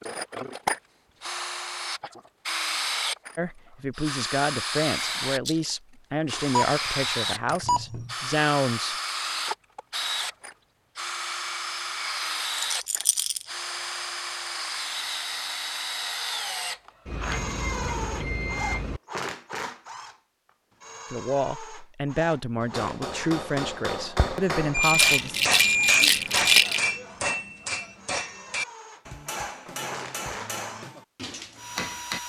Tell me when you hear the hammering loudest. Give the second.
26 s.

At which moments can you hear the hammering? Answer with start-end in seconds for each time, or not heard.
22.6-32.2.